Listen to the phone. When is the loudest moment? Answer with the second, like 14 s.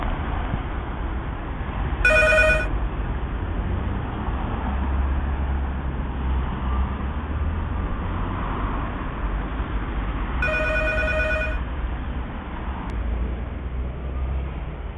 2 s.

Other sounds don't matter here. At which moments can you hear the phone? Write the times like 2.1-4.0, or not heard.
2.0-2.7, 10.4-11.6.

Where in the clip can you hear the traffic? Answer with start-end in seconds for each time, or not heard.
0.0-14.9.